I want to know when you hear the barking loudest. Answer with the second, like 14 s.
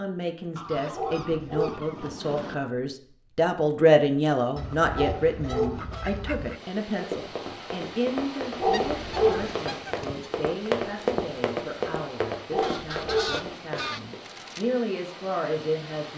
9 s.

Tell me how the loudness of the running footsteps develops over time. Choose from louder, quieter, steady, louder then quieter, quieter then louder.
louder then quieter.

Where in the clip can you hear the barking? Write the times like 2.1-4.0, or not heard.
0.9-1.8, 4.9-5.8, 8.6-9.4, 12.5-13.3.